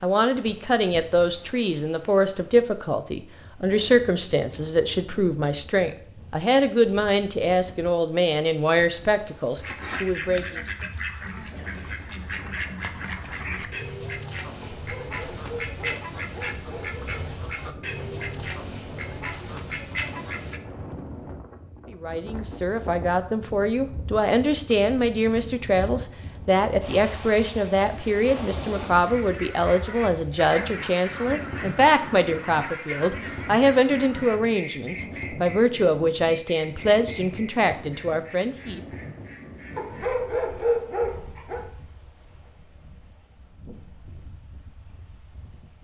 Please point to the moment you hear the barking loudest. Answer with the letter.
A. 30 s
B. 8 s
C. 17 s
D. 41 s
D.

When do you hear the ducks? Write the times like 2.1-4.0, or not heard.
9.6-20.6, 29.1-40.1.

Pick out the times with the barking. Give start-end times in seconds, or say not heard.
14.6-17.2, 39.8-41.6.